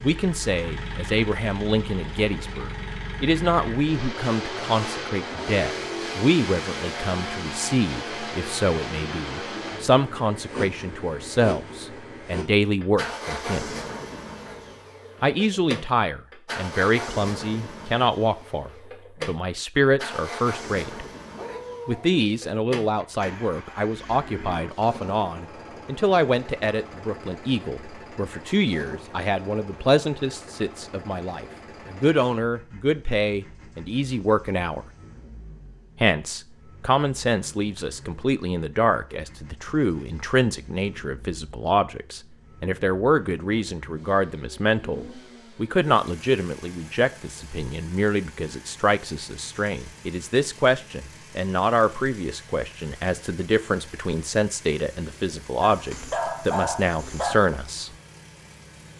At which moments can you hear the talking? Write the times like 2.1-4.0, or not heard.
0.0-13.7, 15.2-21.1, 21.9-34.9, 36.0-57.9.